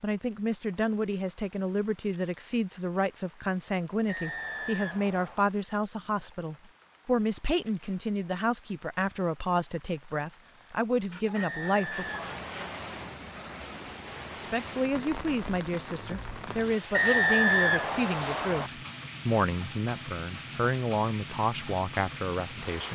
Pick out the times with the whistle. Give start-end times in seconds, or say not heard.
4.0-5.5, 11.3-13.1, 16.9-18.7.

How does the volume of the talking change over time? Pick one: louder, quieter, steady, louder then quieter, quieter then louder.
steady.